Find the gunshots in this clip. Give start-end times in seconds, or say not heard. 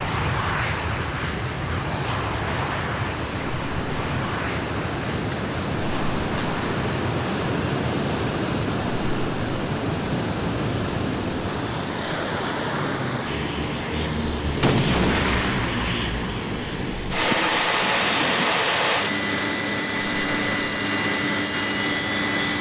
14.4-15.9.